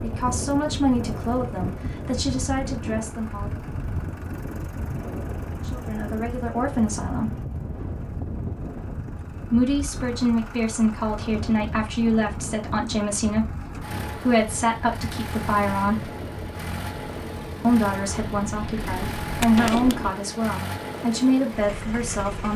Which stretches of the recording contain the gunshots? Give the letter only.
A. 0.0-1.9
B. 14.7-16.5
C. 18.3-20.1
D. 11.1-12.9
C.